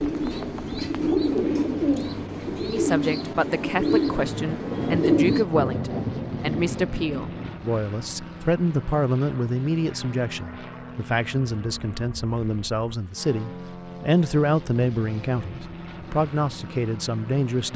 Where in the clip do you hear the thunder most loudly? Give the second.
6 s.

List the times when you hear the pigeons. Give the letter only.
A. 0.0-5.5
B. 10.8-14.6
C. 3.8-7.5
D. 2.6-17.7
A.